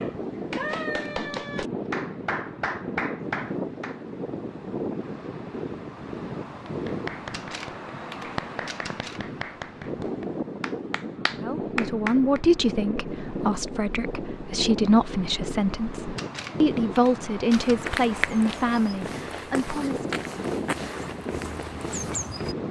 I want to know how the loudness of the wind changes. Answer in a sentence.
The loudness of the wind stays about the same.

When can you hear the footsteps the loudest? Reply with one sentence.
The volume of the footsteps peaks at 18 seconds.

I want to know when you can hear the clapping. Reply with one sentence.
The clapping can be heard from 0.0 to 4.0 s and from 6.7 to 12.4 s.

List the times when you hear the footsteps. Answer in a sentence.
You can hear the footsteps from 17.5 to 22.6 s.